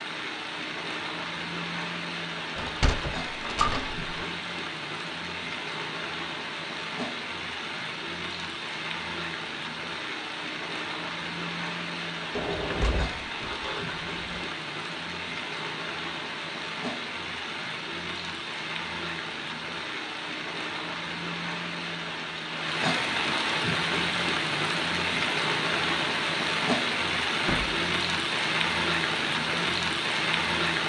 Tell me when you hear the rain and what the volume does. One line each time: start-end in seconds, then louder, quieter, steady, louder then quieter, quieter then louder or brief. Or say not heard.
0.0-30.8 louder.